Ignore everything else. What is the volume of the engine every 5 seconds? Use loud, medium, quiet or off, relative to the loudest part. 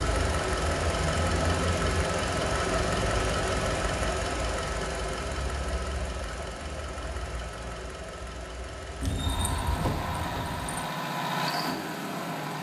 loud, medium, loud.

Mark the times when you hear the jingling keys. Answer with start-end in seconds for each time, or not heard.
9.0-10.7.